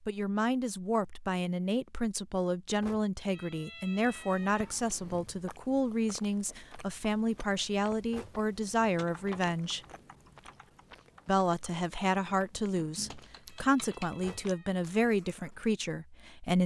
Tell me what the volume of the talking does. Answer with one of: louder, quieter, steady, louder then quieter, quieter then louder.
steady.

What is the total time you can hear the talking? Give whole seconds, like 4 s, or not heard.
15 s.